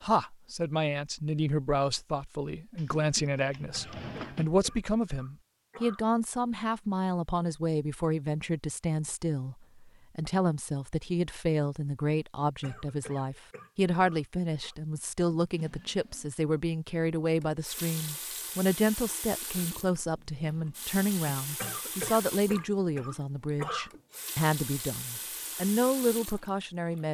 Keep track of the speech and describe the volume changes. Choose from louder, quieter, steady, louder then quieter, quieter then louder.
steady.